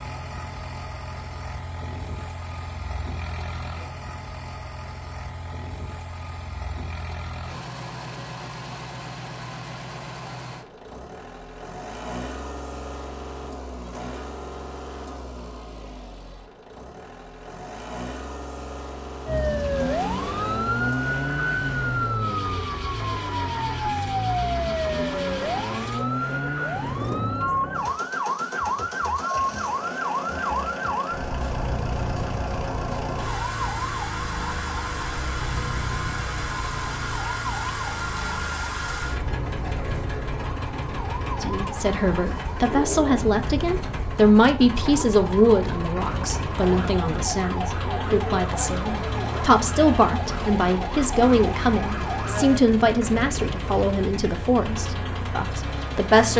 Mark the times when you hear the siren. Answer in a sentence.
You can hear the siren from 19.2 to 52.5 s.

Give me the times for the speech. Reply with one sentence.
The speech can be heard from 41.4 to 56.3 s.